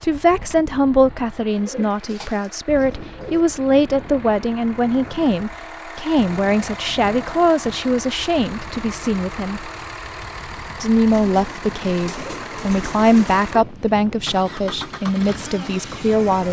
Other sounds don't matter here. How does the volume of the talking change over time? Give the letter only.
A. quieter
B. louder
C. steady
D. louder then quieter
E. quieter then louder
C.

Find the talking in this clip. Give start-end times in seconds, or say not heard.
0.0-9.7, 10.8-16.4.